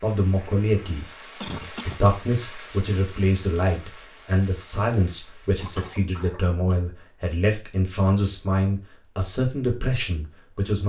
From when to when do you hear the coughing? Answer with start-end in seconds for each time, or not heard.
1.4-2.0, 5.6-6.8.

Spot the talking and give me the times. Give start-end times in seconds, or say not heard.
0.0-1.1, 1.9-10.8.